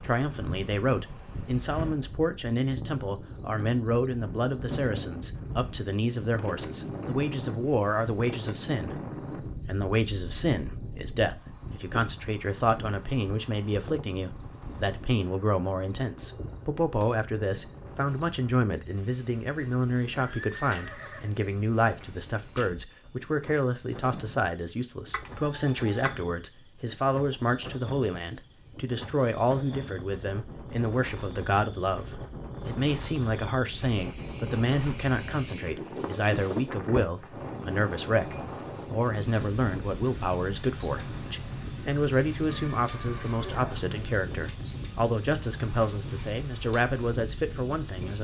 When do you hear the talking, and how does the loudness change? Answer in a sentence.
The talking can be heard from 0.0 to 48.1 s, at a steady volume.